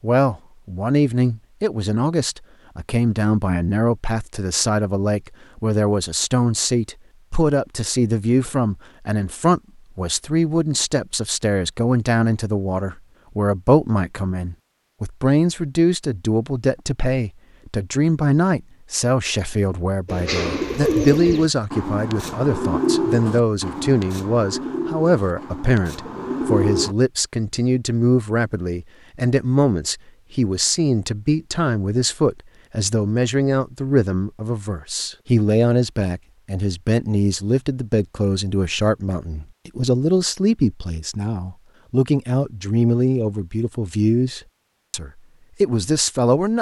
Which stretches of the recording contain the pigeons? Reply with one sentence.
The pigeons can be heard from 20.1 to 26.9 s.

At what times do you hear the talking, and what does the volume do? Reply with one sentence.
You can hear the talking from 0.0 to 46.5 s, at a steady volume.